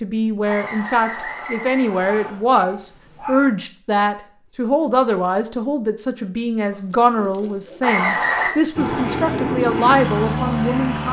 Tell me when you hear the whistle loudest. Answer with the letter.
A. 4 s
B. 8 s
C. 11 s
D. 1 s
B.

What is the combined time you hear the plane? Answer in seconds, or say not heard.
2 s.